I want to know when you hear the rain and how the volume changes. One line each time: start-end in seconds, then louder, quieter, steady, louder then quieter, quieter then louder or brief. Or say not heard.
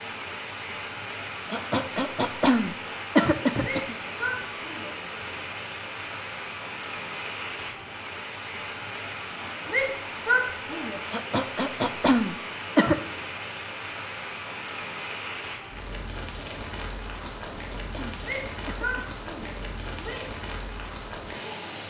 0.0-21.8 steady.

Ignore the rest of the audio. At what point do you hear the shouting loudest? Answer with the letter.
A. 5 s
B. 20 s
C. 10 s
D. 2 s
C.